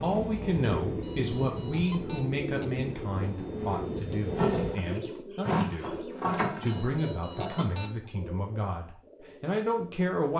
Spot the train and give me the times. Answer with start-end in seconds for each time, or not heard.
0.0-4.8.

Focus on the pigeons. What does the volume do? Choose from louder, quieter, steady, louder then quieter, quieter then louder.
louder then quieter.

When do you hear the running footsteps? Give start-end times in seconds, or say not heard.
not heard.